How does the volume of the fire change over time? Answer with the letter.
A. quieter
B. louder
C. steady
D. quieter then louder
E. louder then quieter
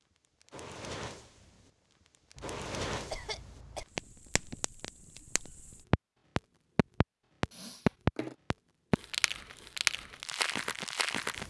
E.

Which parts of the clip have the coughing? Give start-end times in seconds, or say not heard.
2.4-3.9, 7.5-8.3.